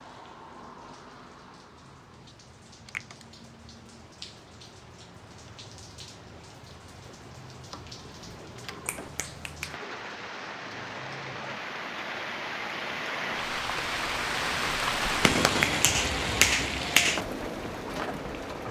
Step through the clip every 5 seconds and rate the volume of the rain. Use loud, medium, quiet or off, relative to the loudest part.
quiet, quiet, loud, loud.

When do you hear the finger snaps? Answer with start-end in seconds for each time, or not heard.
8.8-9.7, 15.2-17.2.